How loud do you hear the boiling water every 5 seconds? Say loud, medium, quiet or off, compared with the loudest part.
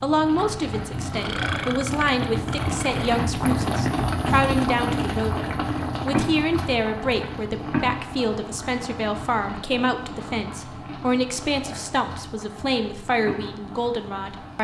loud, loud, medium.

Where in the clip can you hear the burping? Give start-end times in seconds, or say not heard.
1.1-3.1.